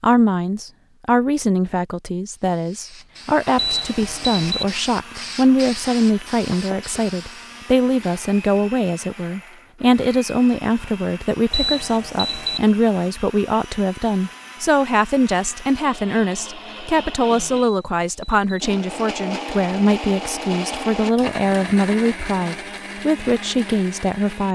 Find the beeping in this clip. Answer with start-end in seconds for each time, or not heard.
3.5-4.7, 11.5-12.6, 17.6-18.6.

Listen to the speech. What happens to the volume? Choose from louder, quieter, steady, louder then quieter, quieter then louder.
steady.